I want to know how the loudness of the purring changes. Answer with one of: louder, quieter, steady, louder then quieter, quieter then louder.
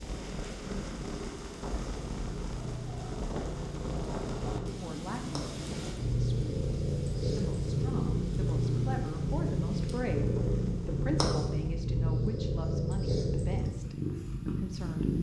louder.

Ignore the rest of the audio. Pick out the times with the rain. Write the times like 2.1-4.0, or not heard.
0.0-11.8.